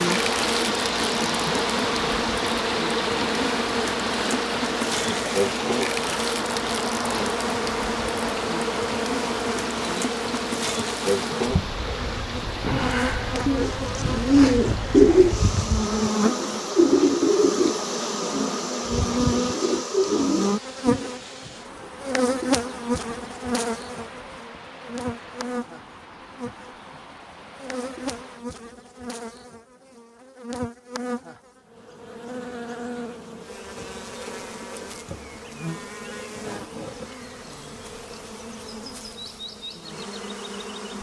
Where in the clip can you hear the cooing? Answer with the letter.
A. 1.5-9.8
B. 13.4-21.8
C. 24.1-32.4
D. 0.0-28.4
B.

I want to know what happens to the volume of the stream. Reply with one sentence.
The volume of the stream goes down.